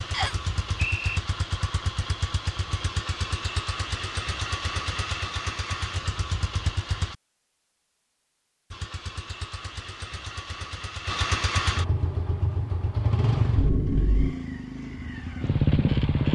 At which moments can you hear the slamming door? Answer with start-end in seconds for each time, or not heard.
not heard.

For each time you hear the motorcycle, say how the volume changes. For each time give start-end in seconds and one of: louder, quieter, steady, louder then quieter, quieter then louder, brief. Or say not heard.
0.0-7.2 steady
8.7-16.3 louder.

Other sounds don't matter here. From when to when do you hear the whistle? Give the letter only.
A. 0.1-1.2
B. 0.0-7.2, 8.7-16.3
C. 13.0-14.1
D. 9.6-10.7
A.